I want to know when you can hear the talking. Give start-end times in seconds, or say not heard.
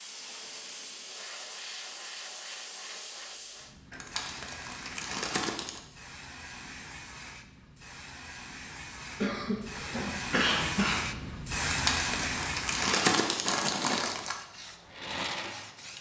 not heard.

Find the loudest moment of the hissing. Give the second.
12 s.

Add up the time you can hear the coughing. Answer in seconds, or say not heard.
2 s.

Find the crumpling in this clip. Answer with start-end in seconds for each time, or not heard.
3.9-5.8, 11.7-14.3.